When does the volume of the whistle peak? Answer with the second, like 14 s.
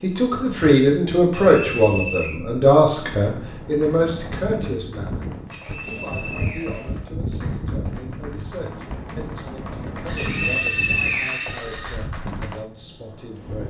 11 s.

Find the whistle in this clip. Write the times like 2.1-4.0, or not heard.
1.3-2.4, 5.5-6.9, 10.2-11.6.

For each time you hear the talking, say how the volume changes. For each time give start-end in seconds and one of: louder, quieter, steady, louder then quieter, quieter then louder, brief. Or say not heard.
0.0-13.6 quieter.